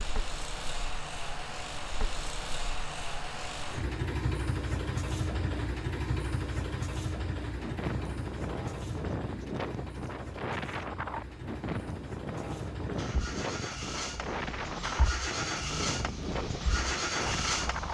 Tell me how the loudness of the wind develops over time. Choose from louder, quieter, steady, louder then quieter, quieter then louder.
steady.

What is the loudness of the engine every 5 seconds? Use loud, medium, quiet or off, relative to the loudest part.
loud, loud, medium, loud.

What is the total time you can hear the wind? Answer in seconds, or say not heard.
10 s.